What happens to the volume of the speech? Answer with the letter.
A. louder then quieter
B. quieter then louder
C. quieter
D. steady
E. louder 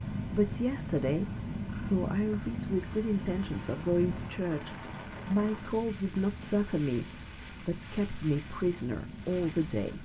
D.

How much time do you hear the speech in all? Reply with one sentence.
You can hear the speech for 10 seconds altogether.